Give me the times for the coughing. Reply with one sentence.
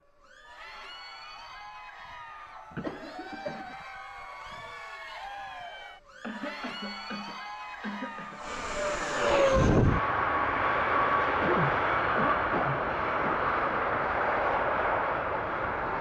The coughing can be heard from 2.7 to 3.8 s, from 6.2 to 8.4 s and from 11.4 to 13.4 s.